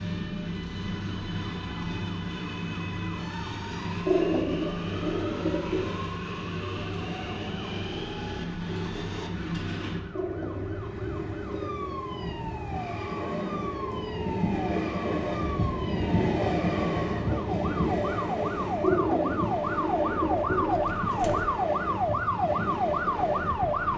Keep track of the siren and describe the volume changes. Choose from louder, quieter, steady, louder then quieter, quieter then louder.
louder.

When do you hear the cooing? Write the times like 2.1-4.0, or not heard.
4.0-6.0, 10.1-12.0, 18.8-21.5.